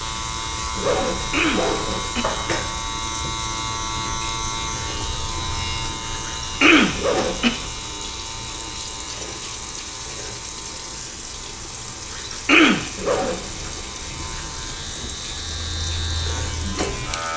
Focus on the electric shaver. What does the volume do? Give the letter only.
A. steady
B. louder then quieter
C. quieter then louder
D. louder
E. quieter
C.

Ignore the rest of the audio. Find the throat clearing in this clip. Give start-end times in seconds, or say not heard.
1.1-2.2, 6.2-7.5, 12.2-12.9.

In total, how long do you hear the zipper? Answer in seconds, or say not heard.
3 s.